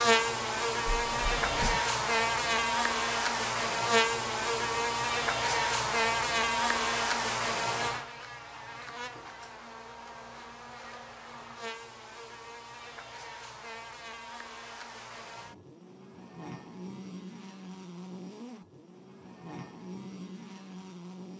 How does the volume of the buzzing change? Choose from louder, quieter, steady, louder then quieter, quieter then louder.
quieter.